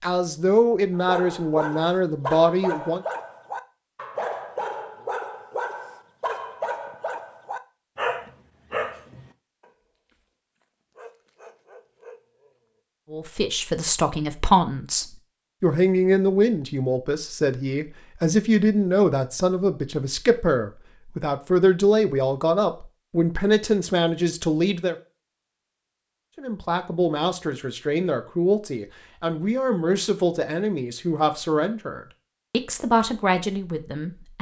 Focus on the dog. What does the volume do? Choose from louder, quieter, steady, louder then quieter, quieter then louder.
quieter.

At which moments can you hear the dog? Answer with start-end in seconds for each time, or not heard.
0.9-12.8.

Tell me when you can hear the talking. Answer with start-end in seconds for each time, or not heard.
0.0-3.0, 13.1-24.9, 26.4-34.3.